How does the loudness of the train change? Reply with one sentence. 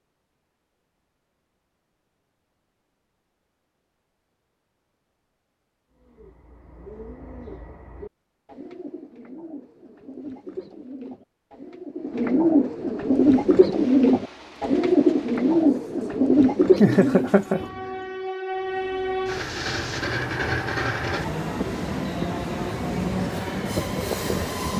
The volume of the train goes up.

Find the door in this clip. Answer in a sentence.
You can't hear the door here.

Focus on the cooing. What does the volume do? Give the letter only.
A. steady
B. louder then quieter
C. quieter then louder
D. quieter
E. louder
E.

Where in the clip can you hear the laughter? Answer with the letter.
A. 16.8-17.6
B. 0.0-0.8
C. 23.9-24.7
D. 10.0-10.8
A.